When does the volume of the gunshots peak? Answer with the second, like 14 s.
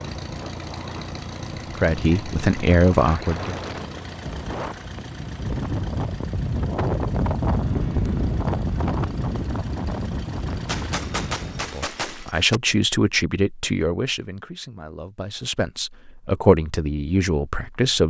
11 s.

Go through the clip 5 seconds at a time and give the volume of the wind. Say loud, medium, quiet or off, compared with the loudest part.
medium, loud, medium, off.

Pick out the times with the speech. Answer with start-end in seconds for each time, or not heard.
1.8-3.5, 11.6-18.0.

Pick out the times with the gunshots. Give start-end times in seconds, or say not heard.
10.7-12.6.